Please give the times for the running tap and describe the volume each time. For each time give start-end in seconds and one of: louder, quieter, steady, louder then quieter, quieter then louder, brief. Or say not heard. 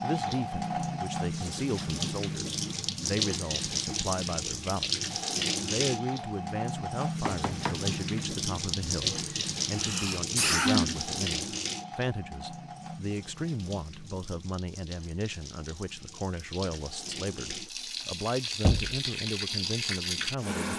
0.0-20.7 quieter then louder.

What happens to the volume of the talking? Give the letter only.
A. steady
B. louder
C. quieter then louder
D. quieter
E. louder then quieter
A.